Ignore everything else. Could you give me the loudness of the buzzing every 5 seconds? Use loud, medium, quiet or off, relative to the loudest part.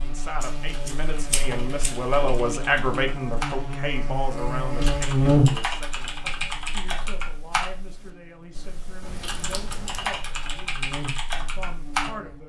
medium, loud, quiet.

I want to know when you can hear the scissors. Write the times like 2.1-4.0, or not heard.
0.4-2.4, 9.0-10.2.